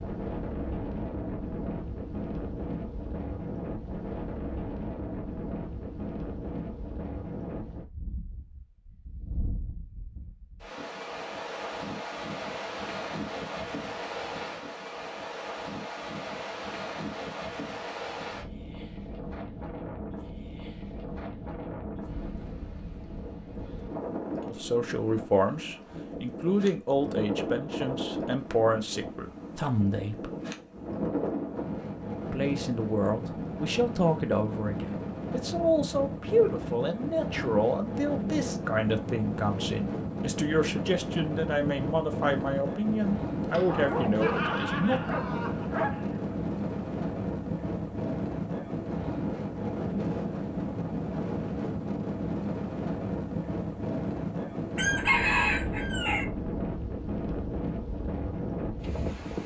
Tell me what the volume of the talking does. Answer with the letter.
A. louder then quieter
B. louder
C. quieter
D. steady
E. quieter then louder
D.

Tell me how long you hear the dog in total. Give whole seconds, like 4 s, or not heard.
3 s.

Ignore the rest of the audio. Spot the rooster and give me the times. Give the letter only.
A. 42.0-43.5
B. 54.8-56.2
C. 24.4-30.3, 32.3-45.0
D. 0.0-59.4
B.